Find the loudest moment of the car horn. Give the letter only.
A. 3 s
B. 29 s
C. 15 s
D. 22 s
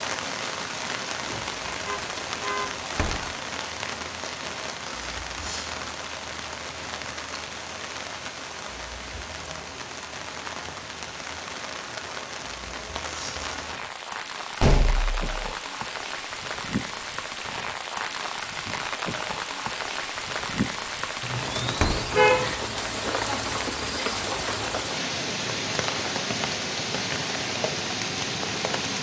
D.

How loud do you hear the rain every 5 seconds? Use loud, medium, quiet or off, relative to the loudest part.
loud, medium, medium, loud, loud, loud.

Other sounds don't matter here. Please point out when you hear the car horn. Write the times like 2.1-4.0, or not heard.
1.9-2.9, 21.2-22.6.